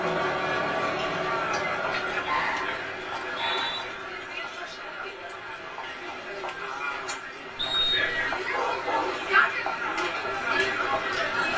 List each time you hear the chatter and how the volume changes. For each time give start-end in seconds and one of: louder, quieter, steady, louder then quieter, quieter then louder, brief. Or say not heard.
0.0-11.5 quieter then louder.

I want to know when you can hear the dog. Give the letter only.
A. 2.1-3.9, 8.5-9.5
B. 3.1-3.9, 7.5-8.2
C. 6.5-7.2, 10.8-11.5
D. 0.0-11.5
A.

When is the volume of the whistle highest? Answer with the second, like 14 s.
8 s.